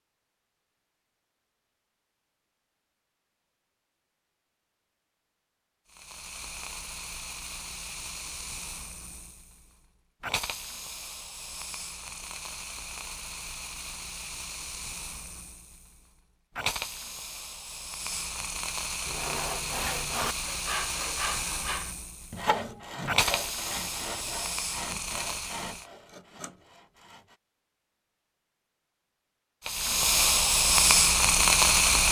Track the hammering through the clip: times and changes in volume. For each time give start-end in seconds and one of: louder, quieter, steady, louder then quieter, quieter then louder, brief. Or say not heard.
not heard.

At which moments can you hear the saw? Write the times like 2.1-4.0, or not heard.
19.1-27.4.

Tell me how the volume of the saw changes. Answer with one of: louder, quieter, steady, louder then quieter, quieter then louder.
quieter.